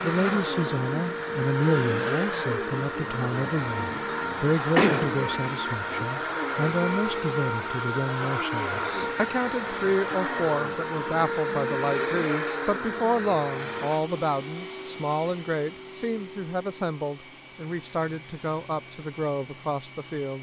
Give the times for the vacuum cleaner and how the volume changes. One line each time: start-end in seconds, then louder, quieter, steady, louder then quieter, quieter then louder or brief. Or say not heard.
0.0-20.3 quieter.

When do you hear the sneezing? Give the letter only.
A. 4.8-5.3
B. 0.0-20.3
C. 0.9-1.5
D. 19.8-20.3
A.